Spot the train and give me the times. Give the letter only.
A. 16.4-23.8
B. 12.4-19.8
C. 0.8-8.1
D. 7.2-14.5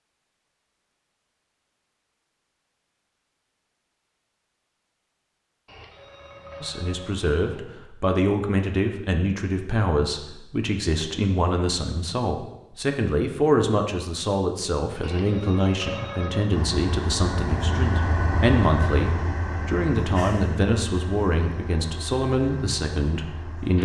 A.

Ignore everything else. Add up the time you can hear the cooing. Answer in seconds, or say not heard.
not heard.